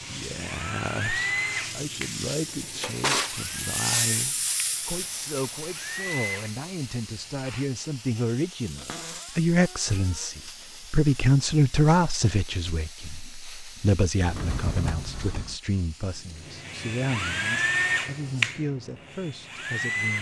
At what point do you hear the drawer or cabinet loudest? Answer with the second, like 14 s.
3 s.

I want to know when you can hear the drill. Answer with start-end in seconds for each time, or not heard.
0.0-7.7, 16.4-20.1.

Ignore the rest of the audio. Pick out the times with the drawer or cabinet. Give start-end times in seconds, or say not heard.
2.5-3.4, 8.8-10.2, 14.2-15.6.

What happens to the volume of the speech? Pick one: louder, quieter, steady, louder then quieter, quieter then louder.
louder then quieter.